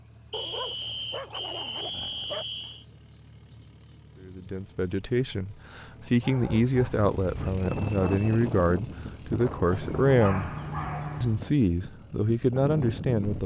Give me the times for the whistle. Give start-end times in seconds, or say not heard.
0.3-2.9, 7.6-8.5.